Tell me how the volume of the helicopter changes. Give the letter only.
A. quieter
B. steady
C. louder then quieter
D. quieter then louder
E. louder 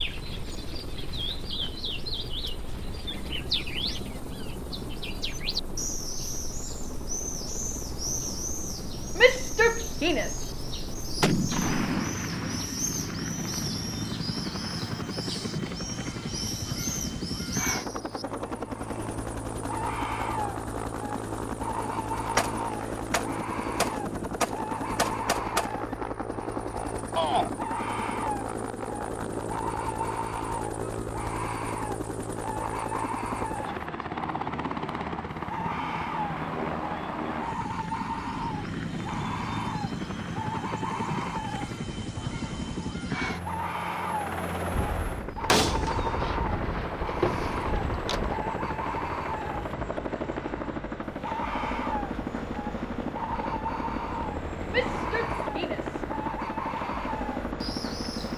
E.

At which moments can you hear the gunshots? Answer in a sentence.
The gunshots can be heard from 11.2 to 12.7 s, from 22.4 to 25.7 s and from 44.7 to 48.4 s.